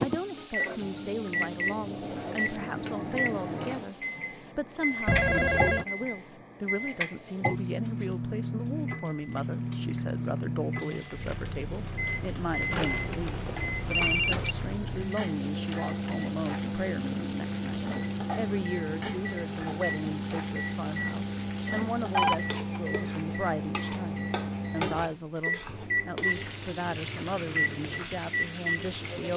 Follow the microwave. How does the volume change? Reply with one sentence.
The loudness of the microwave stays about the same.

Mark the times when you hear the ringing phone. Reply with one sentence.
The ringing phone can be heard from 5.0 to 5.8 s, from 12.7 to 14.6 s and from 22.1 to 22.8 s.